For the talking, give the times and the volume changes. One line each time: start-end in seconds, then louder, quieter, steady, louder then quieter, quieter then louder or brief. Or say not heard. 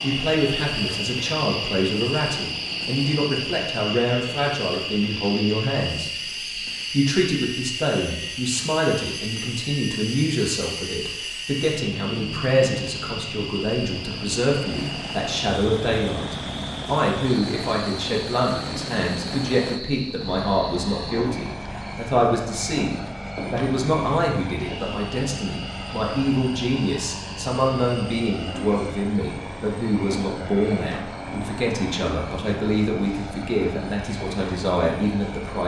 0.0-35.6 steady.